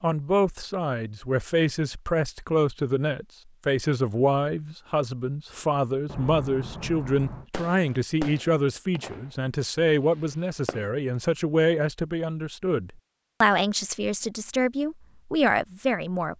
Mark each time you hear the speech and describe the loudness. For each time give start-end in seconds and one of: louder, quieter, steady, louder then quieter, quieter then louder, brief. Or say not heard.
0.0-16.3 steady.